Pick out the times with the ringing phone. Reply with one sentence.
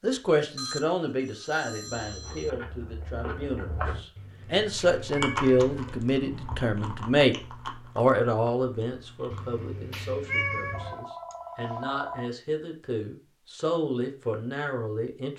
The ringing phone can be heard from 0.6 to 2.5 s and from 10.7 to 12.3 s.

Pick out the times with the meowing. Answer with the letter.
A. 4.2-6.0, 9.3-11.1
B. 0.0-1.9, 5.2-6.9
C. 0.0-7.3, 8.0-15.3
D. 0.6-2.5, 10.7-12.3
A.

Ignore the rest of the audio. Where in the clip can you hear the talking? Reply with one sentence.
The talking can be heard from 0.0 to 7.3 s and from 8.0 to 15.3 s.